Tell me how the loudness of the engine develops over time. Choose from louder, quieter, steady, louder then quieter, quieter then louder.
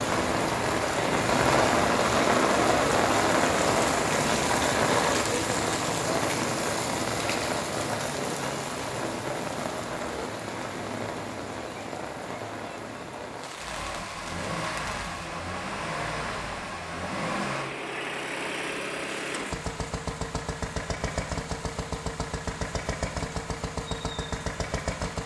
steady.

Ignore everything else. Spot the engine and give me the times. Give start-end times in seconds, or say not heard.
13.6-25.2.